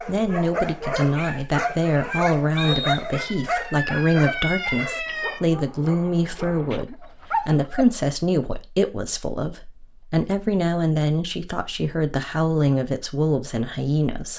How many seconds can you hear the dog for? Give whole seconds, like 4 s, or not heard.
8 s.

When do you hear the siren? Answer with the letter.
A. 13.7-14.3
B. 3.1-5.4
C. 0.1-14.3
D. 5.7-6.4
B.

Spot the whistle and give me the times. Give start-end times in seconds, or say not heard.
2.5-3.2.